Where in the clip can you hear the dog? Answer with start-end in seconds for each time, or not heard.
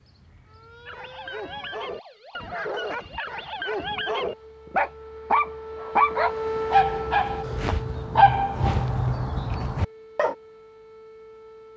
0.8-10.3.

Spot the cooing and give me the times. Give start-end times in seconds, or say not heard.
not heard.